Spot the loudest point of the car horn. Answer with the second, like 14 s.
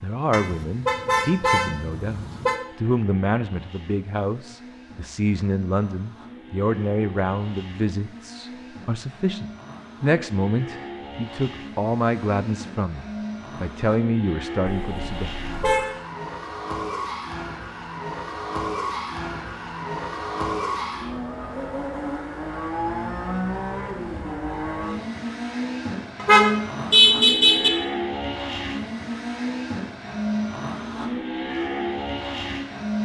27 s.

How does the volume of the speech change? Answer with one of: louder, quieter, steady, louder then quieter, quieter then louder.
steady.